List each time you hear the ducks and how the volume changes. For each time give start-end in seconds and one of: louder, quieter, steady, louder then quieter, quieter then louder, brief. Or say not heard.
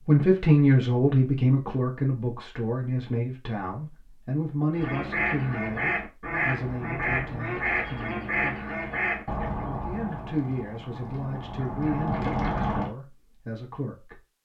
4.8-12.9 quieter then louder.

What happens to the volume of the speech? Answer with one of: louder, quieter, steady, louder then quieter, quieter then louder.
quieter.